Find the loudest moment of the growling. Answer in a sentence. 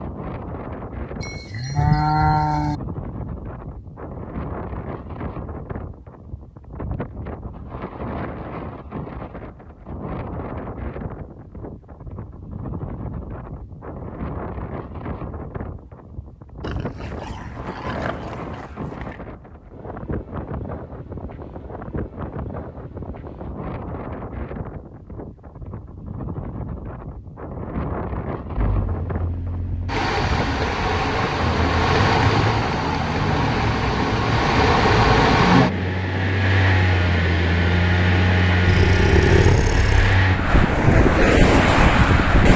The loudest moment of the growling is at 39 seconds.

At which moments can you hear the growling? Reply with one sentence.
You can hear the growling from 16.6 to 19.2 s and from 38.6 to 40.2 s.